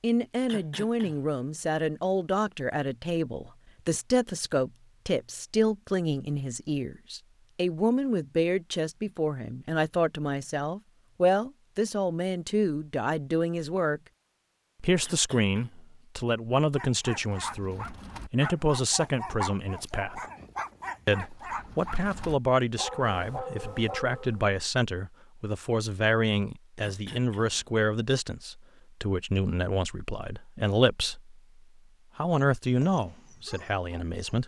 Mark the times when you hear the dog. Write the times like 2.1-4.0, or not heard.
16.6-24.6, 32.4-34.4.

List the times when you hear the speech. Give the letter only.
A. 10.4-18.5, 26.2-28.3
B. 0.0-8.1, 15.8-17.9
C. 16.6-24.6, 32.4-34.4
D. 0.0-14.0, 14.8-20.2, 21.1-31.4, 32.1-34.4
D.